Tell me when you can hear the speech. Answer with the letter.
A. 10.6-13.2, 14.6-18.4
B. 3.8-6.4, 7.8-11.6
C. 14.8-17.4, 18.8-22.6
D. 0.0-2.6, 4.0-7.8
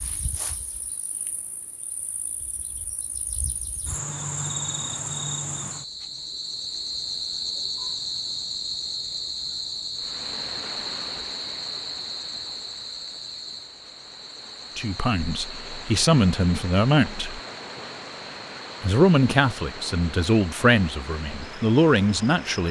C.